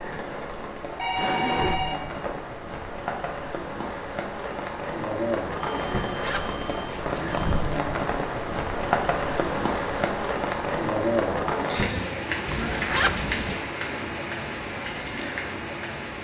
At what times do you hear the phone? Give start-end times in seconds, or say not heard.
0.9-2.3, 5.5-7.6, 11.2-12.1.